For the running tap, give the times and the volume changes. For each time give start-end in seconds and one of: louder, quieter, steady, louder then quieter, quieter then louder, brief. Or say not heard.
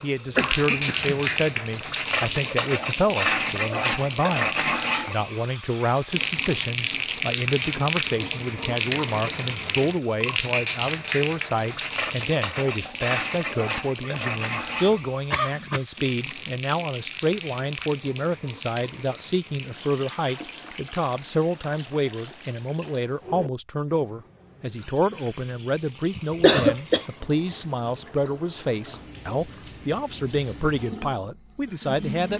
0.0-32.3 quieter.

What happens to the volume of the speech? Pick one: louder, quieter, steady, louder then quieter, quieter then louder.
steady.